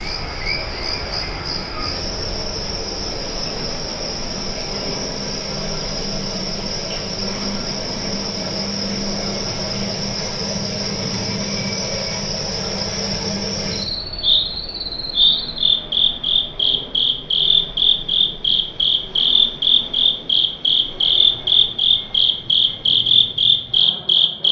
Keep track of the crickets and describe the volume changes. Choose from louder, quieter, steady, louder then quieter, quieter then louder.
louder.